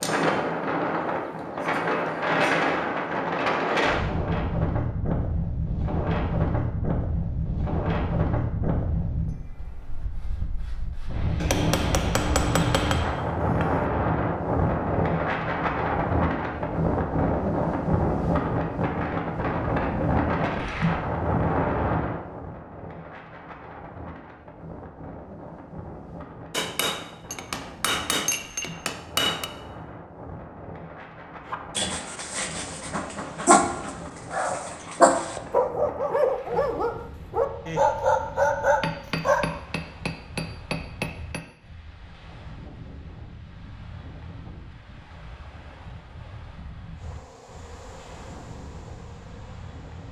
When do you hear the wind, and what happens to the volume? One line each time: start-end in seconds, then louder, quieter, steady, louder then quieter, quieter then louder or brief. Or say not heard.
0.0-50.0 quieter.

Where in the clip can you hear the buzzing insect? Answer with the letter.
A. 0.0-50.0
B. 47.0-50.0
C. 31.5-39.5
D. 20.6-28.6
B.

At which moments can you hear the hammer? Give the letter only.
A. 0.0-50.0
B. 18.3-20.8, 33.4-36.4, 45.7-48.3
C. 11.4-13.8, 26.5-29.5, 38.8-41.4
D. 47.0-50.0
C.